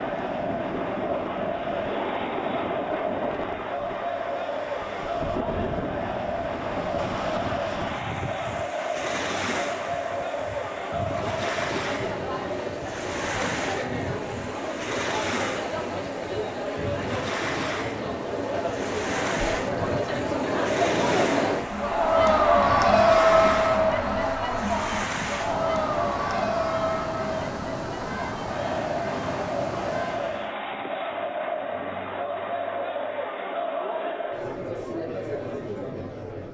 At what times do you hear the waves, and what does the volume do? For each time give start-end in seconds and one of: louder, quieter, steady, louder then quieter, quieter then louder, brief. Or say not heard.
0.0-30.6 steady.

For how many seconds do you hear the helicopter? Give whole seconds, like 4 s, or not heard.
not heard.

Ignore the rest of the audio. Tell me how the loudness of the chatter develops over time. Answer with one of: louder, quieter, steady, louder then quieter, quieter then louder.
louder then quieter.